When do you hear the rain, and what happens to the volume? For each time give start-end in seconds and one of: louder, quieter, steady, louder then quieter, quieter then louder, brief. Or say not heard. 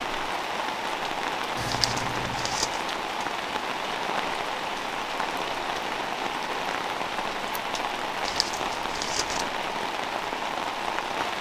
0.0-11.3 steady.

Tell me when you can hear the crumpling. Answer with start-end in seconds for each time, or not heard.
1.6-2.8, 8.2-9.4.